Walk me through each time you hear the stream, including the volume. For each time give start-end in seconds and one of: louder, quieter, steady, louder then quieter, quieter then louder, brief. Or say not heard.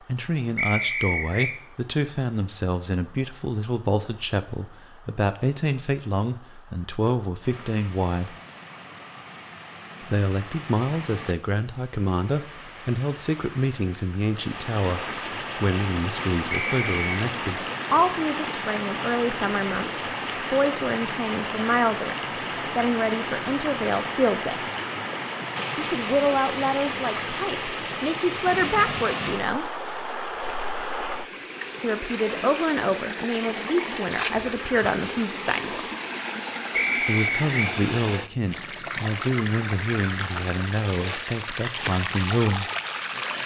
0.0-43.4 louder.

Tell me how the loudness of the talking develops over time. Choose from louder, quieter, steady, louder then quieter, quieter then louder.
steady.